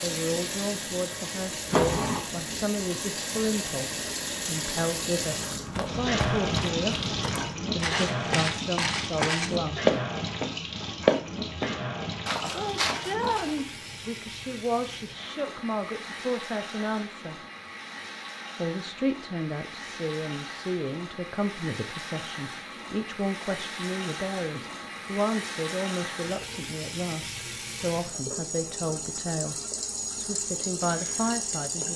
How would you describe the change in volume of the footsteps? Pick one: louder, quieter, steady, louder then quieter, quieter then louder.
louder then quieter.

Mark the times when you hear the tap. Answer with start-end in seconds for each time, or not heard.
0.0-31.9.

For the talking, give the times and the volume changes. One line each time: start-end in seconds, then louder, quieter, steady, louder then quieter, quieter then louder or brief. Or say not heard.
0.0-9.9 steady
12.6-17.4 quieter then louder
18.6-29.6 steady
30.1-31.9 brief.